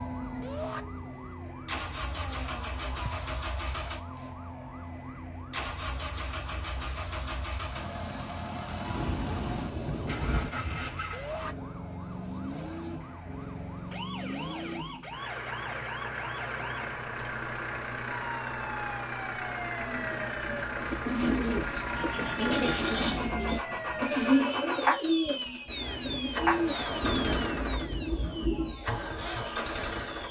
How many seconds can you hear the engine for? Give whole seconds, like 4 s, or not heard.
30 s.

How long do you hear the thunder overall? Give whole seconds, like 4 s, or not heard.
5 s.